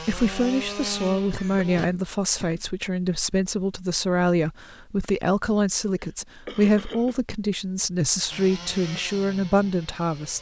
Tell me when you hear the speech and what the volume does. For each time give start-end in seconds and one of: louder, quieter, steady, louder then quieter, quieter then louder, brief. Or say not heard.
0.0-10.3 steady.